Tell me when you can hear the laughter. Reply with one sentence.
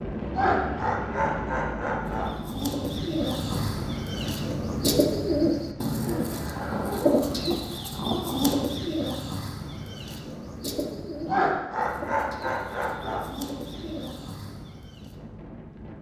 You can hear the laughter from 0.3 to 2.3 s and from 11.2 to 13.2 s.